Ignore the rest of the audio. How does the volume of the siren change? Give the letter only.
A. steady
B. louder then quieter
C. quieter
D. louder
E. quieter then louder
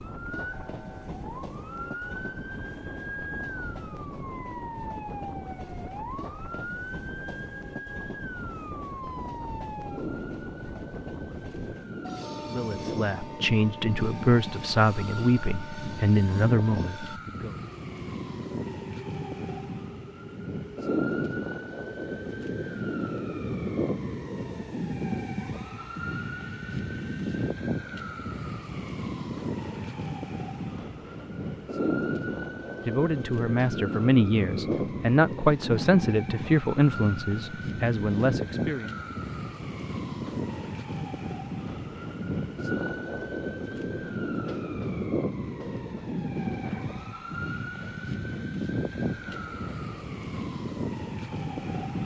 D.